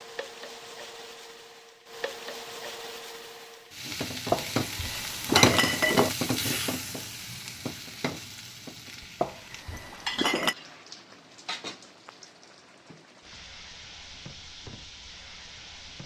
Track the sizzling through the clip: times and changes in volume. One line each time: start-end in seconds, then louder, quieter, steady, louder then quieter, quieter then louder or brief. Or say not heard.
0.0-16.0 louder then quieter.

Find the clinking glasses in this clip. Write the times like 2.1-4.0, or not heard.
4.3-6.1, 9.2-10.6.